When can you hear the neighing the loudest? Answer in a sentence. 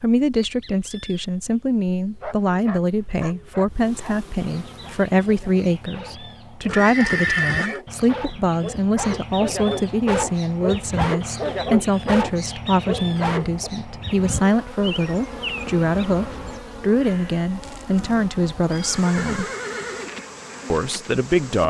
The loudest moment of the neighing is at 7 seconds.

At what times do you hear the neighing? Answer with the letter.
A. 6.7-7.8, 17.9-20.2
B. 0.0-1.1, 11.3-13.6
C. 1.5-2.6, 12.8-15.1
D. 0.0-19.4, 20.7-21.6
A.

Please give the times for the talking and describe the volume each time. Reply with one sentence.
You can hear the talking from 0.0 to 19.4 s, at a steady volume; and briefly from 20.7 to 21.6 s.